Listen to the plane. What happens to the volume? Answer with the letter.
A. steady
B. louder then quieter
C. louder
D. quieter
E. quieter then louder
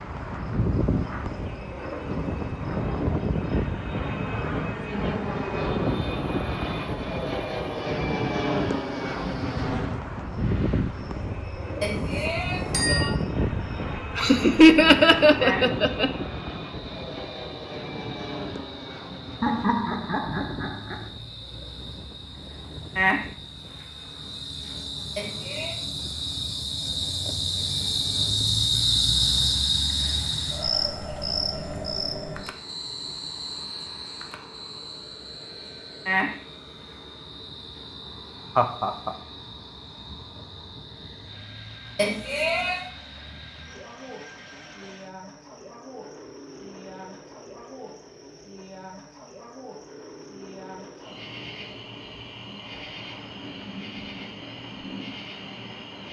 D.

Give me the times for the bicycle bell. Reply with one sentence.
The bicycle bell can be heard from 11.8 to 13.1 s, from 25.1 to 25.8 s and from 42.0 to 42.8 s.